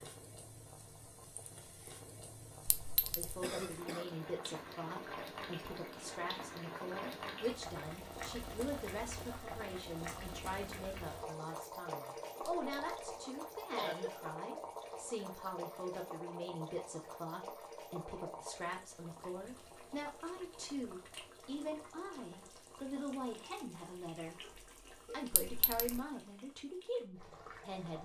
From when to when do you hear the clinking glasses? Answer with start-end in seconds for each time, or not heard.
2.6-3.4, 12.4-13.1, 25.3-26.0.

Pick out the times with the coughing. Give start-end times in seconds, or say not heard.
3.4-4.1, 13.6-14.2, 24.4-25.2.